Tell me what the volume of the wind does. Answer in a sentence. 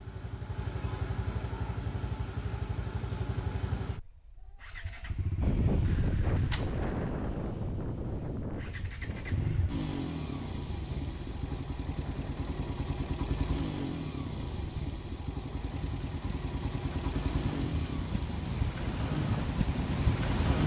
The loudness of the wind goes down, then up.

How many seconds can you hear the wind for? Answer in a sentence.
The wind can be heard for 15 seconds in total.